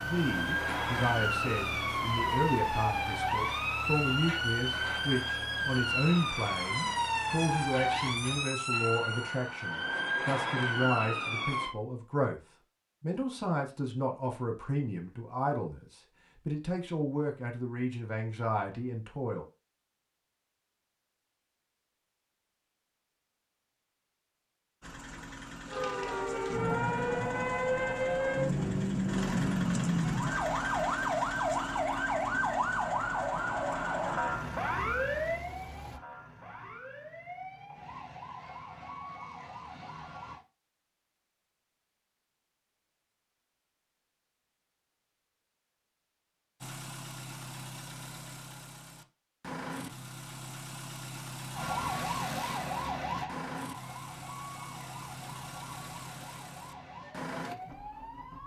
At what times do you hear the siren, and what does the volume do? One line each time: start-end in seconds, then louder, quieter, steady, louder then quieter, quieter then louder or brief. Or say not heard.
0.0-11.8 steady
25.6-40.4 quieter
51.5-58.4 quieter.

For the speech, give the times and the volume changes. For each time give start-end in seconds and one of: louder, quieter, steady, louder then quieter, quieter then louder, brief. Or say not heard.
0.0-12.4 steady
13.0-19.4 steady.